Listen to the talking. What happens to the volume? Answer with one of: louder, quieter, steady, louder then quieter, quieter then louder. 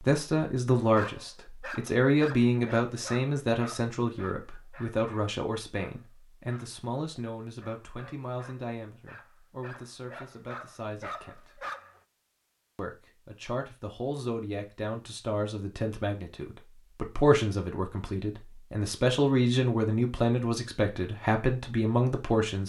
quieter then louder.